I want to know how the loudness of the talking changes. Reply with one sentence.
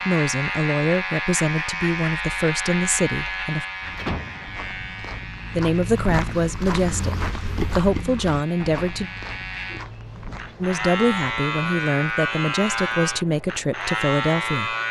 The loudness of the talking stays about the same.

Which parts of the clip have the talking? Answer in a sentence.
The talking can be heard from 0.1 to 3.6 s, from 5.5 to 9.1 s and from 10.6 to 14.8 s.